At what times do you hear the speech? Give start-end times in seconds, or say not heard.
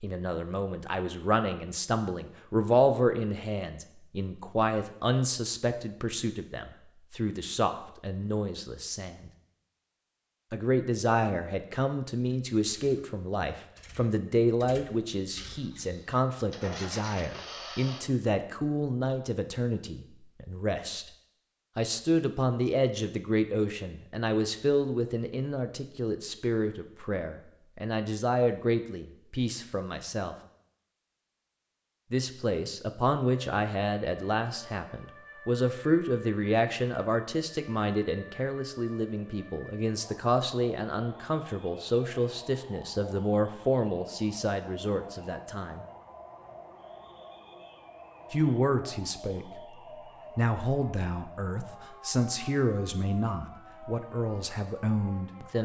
0.0-9.3, 10.5-21.1, 21.8-30.4, 32.1-45.9, 48.3-49.8, 50.4-55.6.